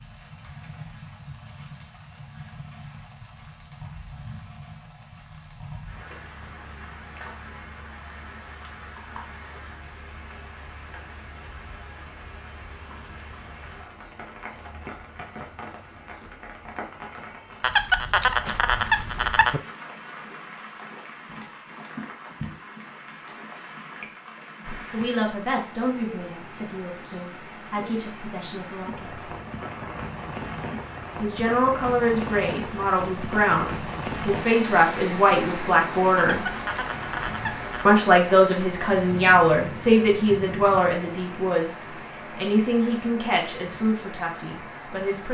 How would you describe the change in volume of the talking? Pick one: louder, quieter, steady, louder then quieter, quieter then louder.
louder then quieter.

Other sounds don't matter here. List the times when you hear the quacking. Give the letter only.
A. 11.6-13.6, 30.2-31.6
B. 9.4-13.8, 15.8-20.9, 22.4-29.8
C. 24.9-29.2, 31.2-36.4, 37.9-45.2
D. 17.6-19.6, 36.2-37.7
D.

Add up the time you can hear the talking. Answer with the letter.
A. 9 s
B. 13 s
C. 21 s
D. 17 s
D.